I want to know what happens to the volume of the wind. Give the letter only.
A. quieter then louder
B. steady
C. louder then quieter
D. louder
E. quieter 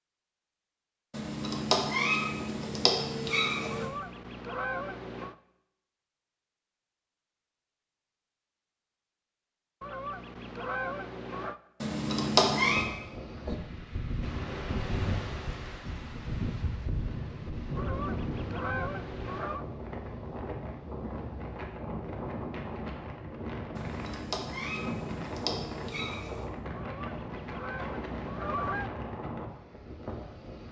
B.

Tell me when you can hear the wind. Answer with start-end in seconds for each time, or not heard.
12.6-30.6.